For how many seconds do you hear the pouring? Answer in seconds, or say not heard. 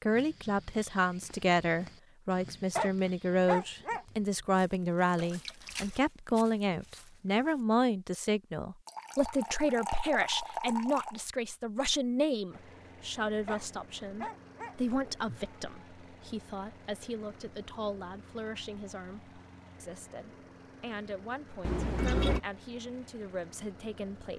4 s.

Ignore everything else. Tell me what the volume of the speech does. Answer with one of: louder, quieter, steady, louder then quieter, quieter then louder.
quieter.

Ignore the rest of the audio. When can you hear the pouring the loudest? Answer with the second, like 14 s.
22 s.